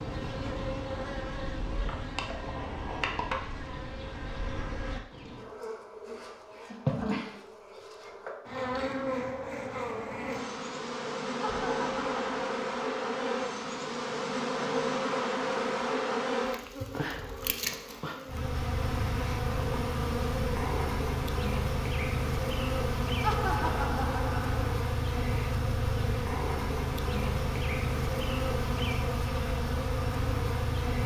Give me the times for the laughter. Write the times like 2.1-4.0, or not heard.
11.4-12.4, 23.2-24.8.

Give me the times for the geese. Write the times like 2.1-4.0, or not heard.
not heard.